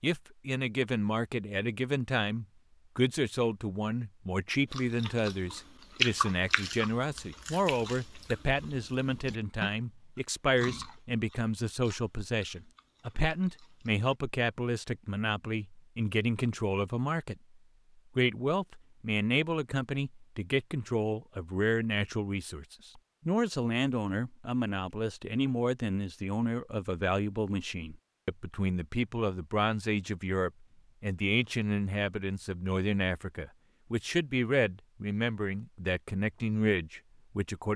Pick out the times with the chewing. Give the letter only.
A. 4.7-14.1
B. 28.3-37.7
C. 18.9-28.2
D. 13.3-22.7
A.